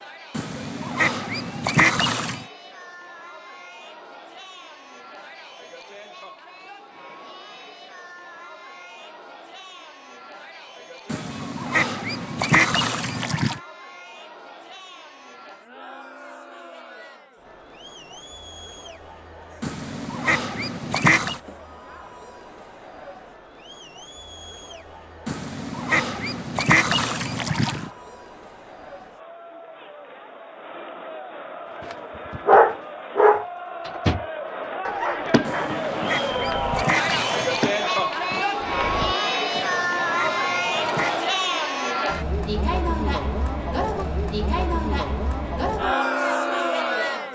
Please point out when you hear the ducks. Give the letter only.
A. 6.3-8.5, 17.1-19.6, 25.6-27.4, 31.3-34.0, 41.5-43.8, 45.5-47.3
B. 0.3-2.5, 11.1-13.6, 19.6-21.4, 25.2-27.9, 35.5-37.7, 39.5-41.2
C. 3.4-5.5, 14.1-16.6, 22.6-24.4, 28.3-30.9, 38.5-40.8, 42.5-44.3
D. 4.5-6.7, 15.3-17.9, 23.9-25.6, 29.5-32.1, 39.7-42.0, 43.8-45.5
B.